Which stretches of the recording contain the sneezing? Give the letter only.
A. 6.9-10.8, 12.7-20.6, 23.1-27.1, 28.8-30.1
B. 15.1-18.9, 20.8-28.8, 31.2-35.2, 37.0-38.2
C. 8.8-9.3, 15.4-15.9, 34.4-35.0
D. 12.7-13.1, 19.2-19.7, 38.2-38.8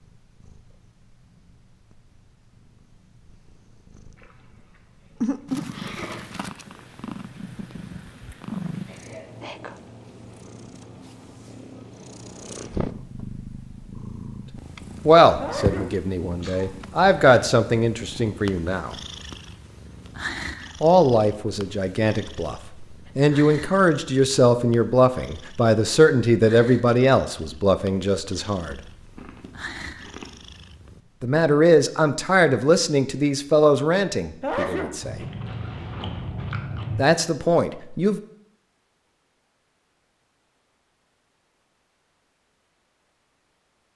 C.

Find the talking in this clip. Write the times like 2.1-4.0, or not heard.
15.1-18.9, 20.8-28.8, 31.2-35.2, 37.0-38.2.